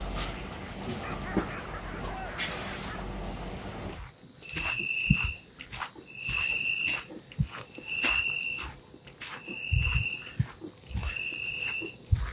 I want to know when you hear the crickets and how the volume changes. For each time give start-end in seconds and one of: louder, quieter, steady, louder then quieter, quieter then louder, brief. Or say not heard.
0.0-12.2 steady.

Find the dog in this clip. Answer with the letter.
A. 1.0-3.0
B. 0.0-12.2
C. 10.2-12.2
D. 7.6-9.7
A.